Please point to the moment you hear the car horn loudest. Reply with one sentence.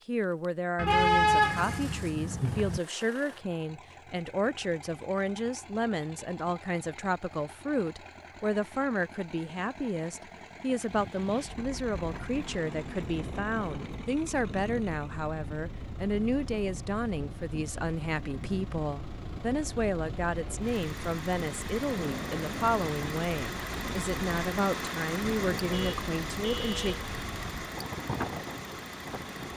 The volume of the car horn peaks at 1 second.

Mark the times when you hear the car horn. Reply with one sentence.
The car horn can be heard from 0.8 to 2.8 s and from 25.7 to 27.1 s.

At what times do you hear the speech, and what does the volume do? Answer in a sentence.
The speech can be heard from 0.1 to 26.9 s, at a steady volume.